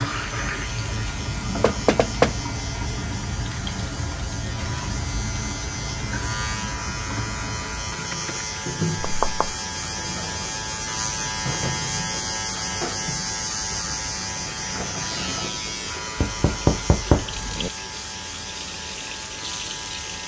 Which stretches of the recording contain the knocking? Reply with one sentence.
The knocking can be heard from 1.6 to 2.4 s, from 9.0 to 9.6 s and from 16.1 to 17.7 s.